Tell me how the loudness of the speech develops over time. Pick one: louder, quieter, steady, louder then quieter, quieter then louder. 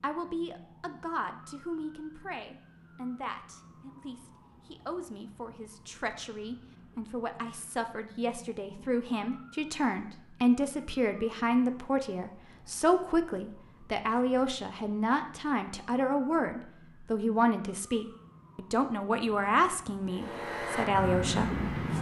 louder.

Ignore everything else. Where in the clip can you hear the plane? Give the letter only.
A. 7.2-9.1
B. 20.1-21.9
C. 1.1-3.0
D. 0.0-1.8
B.